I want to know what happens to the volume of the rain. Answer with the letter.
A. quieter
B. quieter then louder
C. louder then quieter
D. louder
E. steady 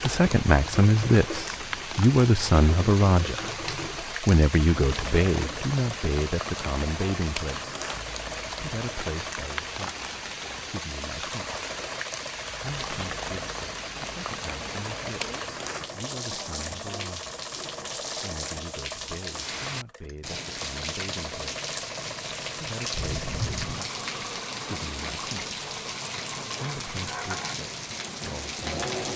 E.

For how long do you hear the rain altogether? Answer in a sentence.
You can hear the rain for 29 seconds altogether.